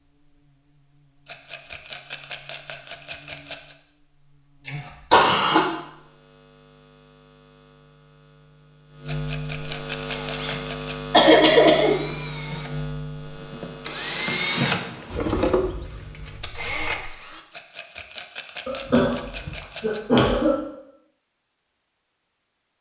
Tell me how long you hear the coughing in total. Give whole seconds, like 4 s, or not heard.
4 s.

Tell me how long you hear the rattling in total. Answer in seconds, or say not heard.
7 s.